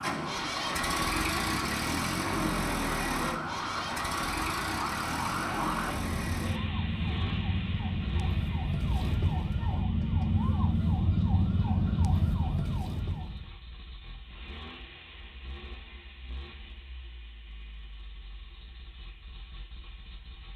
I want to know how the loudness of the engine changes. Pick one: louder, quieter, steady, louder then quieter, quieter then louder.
quieter.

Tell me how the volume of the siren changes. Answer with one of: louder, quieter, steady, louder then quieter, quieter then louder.
louder.